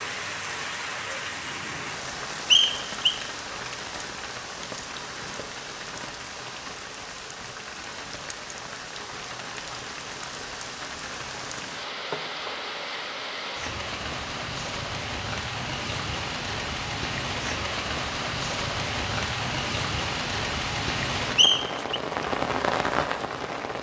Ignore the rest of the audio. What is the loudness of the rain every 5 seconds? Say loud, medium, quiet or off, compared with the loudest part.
medium, medium, medium, loud, loud.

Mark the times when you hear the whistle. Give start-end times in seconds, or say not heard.
2.5-3.1, 21.4-22.0.